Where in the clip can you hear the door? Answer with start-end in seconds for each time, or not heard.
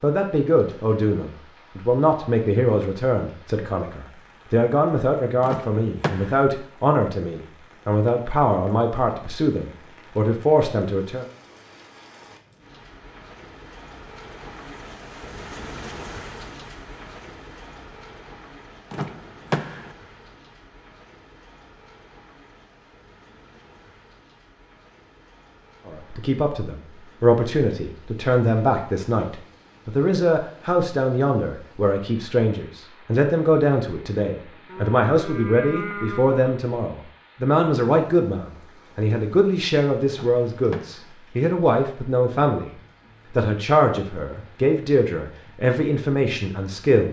5.4-6.5, 18.9-19.9, 40.1-41.1.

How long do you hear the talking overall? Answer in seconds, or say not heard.
32 s.